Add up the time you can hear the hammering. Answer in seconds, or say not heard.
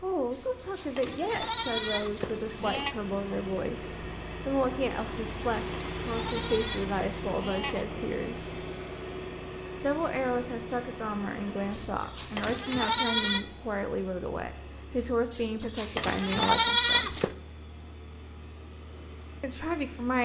not heard.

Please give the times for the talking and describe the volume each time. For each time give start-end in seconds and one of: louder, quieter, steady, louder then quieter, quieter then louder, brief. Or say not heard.
0.0-8.7 steady
9.8-17.2 steady
19.4-20.2 brief.